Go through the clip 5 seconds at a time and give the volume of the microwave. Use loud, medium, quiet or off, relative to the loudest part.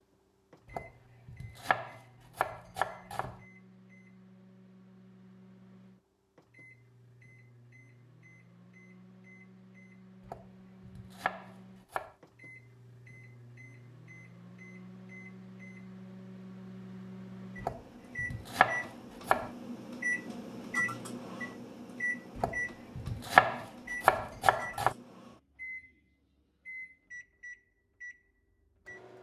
quiet, quiet, quiet, medium, loud, medium.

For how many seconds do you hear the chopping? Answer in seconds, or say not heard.
9 s.